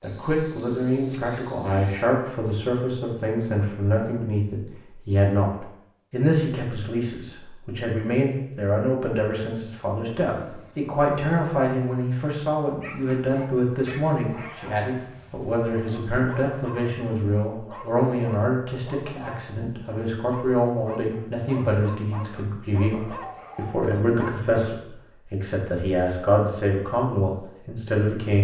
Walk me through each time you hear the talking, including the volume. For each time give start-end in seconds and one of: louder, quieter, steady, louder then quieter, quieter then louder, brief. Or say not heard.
0.0-28.3 steady.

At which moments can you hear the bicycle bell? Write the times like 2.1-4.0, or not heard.
not heard.